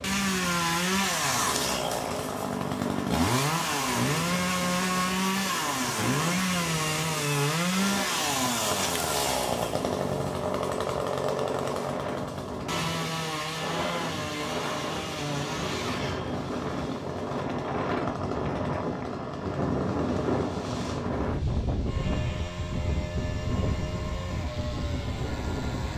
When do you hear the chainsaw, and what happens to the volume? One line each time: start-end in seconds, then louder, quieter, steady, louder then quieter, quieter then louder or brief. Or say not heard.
0.0-25.9 quieter.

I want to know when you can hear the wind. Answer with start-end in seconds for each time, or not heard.
0.0-25.9.